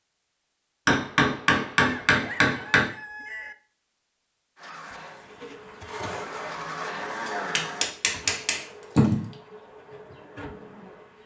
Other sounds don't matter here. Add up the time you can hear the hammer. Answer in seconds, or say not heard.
4 s.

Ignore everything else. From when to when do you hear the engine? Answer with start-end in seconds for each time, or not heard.
4.5-8.0.